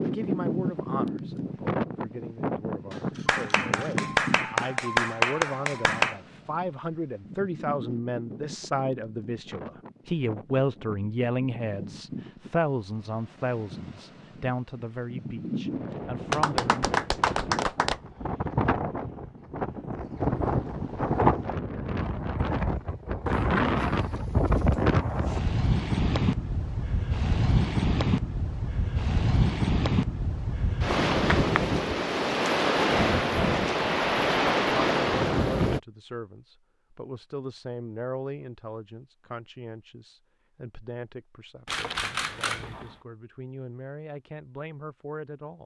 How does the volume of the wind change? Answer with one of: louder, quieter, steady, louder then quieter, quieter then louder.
quieter then louder.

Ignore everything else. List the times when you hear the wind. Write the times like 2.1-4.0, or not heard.
0.0-35.8.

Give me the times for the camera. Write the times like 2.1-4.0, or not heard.
2.9-4.0, 41.6-43.0.